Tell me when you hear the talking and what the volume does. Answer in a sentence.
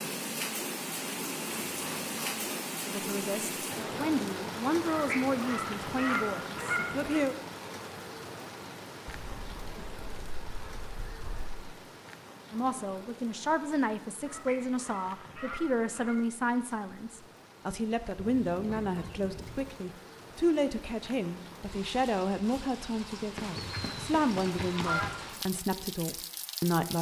You can hear the talking from 2.9 to 7.3 s, getting louder then quieter; and from 12.5 to 26.9 s, at a steady volume.